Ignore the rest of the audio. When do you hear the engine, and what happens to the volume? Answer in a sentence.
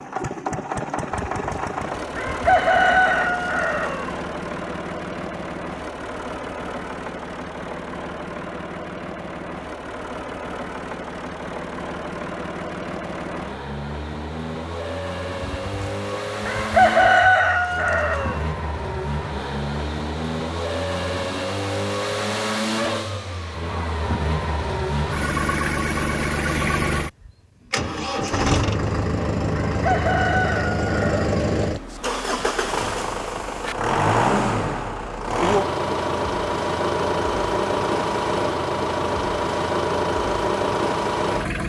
You can hear the engine from 0.0 to 41.6 s, getting louder.